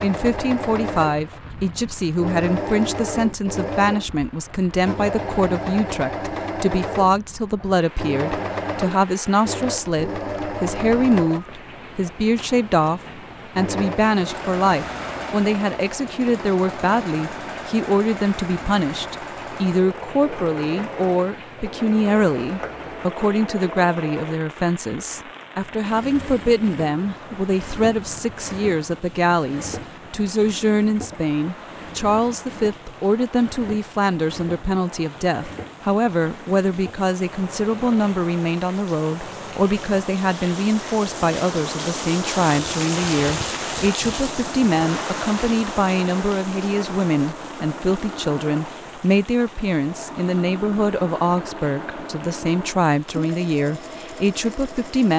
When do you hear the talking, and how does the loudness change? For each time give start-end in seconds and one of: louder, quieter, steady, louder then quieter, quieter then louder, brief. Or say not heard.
0.0-55.1 steady.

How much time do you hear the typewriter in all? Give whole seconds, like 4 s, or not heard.
not heard.